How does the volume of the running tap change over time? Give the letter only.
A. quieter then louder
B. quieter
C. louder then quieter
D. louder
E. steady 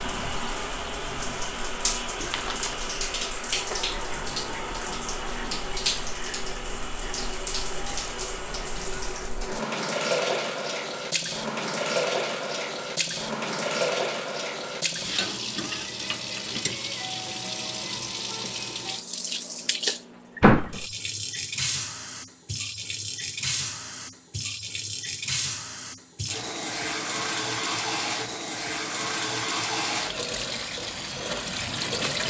E.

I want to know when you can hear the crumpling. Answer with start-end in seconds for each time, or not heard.
2.1-2.8.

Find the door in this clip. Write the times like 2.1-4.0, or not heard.
3.7-5.7, 20.4-20.9.